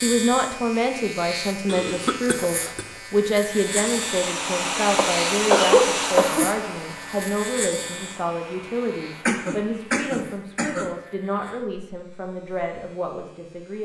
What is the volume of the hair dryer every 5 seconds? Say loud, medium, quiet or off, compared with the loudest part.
loud, loud, off.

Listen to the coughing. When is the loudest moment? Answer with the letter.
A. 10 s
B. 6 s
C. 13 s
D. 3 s
B.